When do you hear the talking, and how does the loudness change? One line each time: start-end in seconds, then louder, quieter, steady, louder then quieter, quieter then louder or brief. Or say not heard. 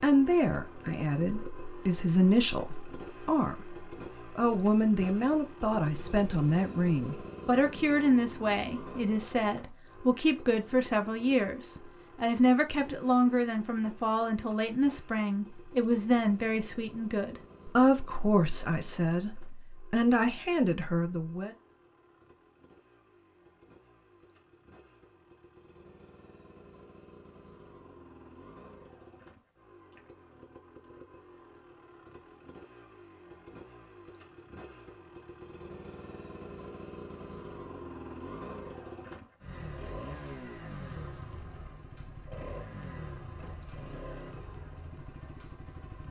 0.0-21.6 steady.